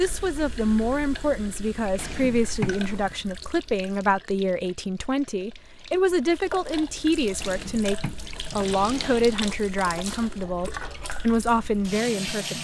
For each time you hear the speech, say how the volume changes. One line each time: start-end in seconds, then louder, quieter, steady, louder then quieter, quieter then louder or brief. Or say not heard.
0.0-12.6 steady.